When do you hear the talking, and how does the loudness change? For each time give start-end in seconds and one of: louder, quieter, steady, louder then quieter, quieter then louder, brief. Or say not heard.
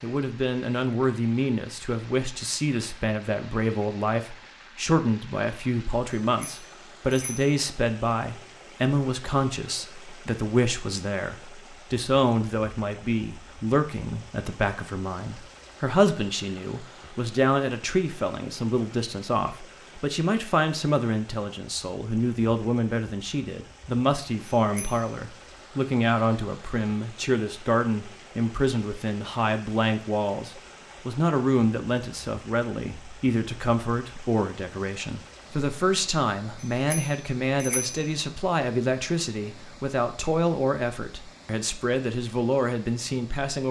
0.0-43.6 steady.